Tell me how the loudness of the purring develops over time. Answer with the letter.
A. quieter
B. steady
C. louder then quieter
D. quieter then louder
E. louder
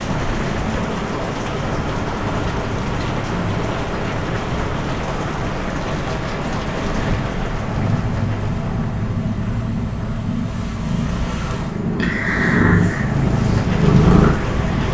E.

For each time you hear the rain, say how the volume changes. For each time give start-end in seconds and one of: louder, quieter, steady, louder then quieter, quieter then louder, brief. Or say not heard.
0.0-14.8 quieter then louder.